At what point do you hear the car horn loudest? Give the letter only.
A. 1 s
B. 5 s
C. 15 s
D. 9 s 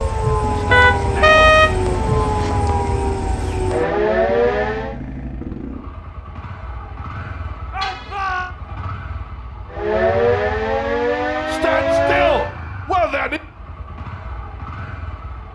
A.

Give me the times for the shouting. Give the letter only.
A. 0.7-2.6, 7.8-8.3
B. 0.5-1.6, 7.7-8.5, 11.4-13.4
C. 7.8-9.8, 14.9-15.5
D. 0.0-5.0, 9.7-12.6
B.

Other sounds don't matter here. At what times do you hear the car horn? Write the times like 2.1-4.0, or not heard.
0.7-2.6, 7.8-8.3.